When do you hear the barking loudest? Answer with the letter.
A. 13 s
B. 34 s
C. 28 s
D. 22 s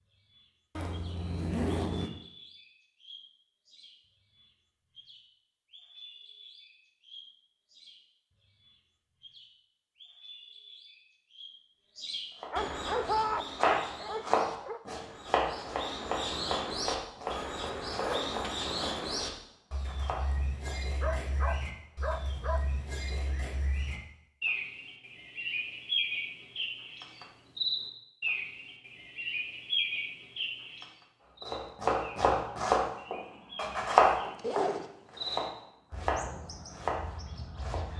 A.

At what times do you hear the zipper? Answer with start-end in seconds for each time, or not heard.
0.8-2.1, 17.2-19.2, 34.4-34.9.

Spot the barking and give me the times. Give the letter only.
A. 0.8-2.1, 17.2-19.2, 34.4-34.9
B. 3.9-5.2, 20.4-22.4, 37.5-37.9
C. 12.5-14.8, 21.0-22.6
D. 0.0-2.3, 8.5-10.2
C.